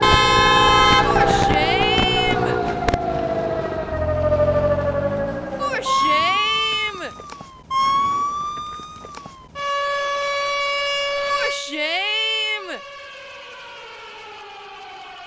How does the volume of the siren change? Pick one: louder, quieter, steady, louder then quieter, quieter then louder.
quieter.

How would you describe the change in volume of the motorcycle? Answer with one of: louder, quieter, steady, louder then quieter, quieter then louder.
quieter.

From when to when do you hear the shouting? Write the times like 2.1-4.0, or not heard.
1.0-2.6, 5.5-7.2, 11.2-12.8.